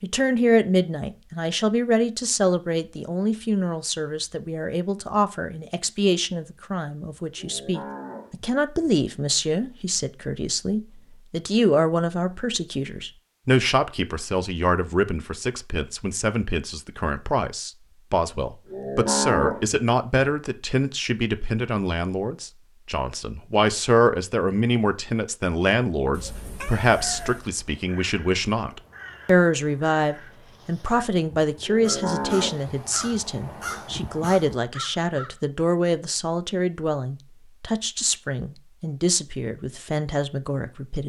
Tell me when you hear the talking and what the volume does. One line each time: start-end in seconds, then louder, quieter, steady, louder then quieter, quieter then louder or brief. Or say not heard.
0.0-41.0 steady.